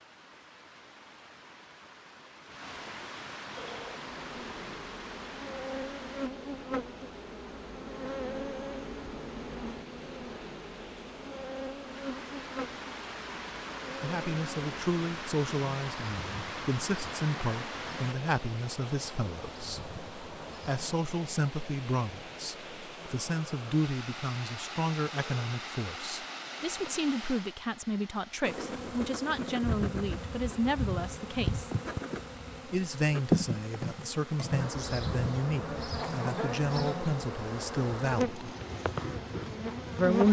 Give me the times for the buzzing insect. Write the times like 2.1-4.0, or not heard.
3.5-20.9, 28.4-40.2.